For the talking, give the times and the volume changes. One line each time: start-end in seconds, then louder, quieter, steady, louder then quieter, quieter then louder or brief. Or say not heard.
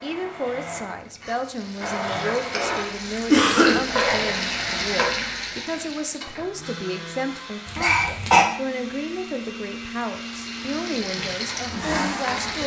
0.0-12.6 steady.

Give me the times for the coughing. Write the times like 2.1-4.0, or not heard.
3.3-3.8, 7.7-8.4.